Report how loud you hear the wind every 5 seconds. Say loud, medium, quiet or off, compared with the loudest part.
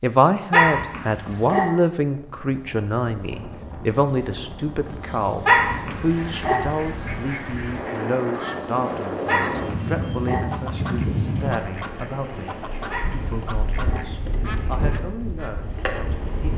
medium, loud, loud, loud.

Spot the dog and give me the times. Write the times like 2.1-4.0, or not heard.
0.5-1.6, 5.5-6.6, 9.2-10.4, 12.9-14.0.